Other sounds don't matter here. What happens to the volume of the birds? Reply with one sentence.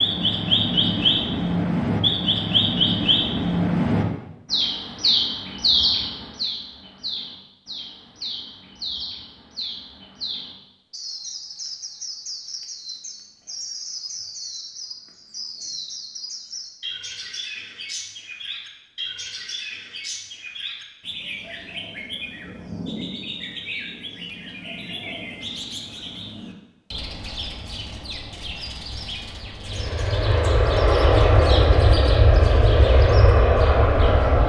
The loudness of the birds goes down.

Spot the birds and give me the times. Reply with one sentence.
The birds can be heard from 0.0 to 34.4 s.